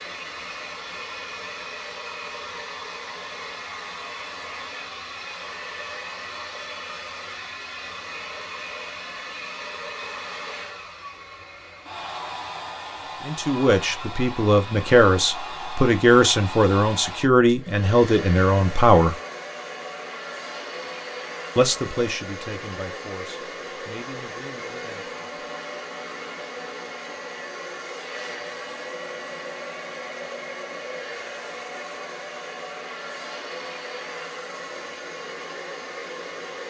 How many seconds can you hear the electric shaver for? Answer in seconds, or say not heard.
not heard.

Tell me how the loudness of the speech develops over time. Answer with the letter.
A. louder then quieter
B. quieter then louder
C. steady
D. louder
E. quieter
E.